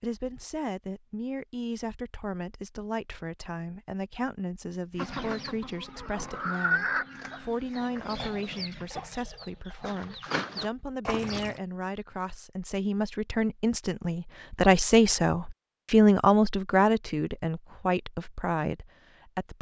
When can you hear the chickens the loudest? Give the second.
7 s.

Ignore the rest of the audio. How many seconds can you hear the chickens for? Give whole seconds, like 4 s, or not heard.
7 s.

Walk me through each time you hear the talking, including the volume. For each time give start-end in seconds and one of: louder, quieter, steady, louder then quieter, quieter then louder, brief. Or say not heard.
0.0-19.5 louder.